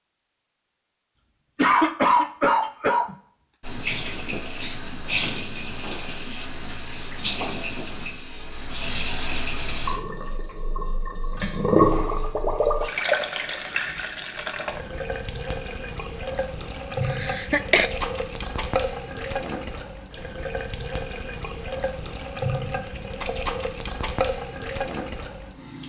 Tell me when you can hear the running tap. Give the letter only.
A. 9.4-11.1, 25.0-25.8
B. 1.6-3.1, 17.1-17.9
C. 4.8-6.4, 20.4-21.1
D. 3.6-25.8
D.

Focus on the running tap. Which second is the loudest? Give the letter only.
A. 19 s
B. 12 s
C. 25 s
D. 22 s
B.